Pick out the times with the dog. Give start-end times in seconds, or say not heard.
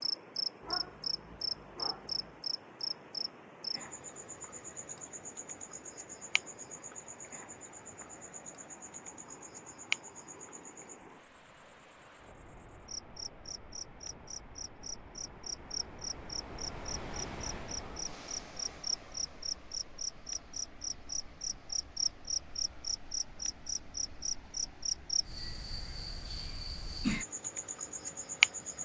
0.6-2.4.